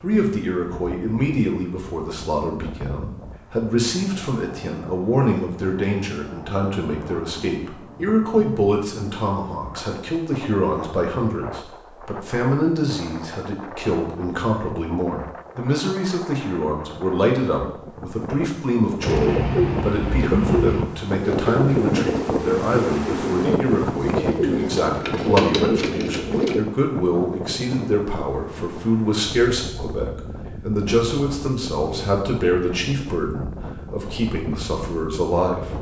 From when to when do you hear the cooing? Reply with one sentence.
You can hear the cooing from 19.0 to 26.6 s.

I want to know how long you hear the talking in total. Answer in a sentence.
The talking can be heard for 36 seconds in total.